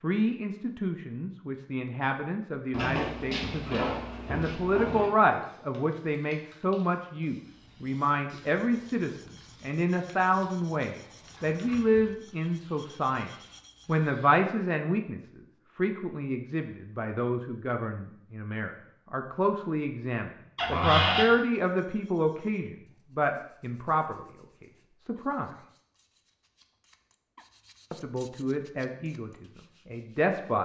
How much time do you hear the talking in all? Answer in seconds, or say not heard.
28 s.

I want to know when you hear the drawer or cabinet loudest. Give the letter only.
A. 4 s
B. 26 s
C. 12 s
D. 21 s
D.